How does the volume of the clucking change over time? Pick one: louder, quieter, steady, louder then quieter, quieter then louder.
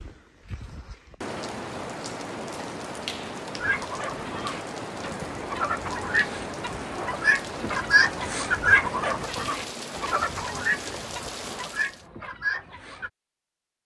louder then quieter.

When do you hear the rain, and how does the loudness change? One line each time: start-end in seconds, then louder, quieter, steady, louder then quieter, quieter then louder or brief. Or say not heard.
0.0-12.1 steady.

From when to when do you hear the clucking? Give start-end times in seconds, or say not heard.
3.6-13.1.